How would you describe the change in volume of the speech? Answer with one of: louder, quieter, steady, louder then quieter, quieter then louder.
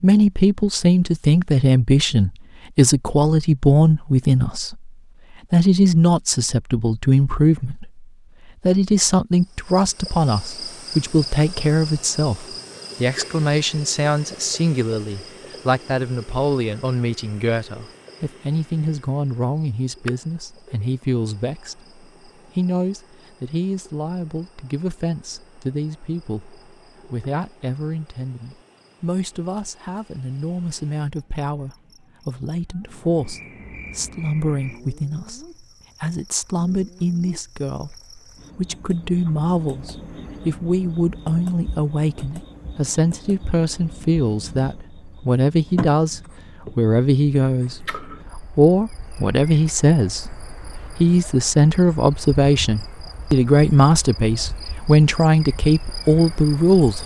quieter then louder.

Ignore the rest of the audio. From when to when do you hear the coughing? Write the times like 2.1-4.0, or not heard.
not heard.